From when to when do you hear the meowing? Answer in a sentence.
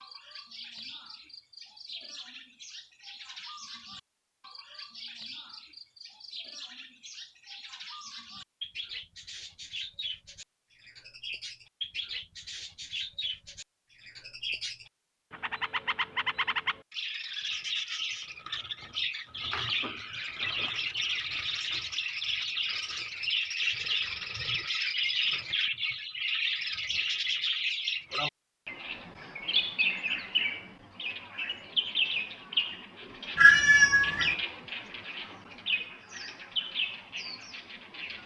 The meowing can be heard from 33.4 to 34.4 s.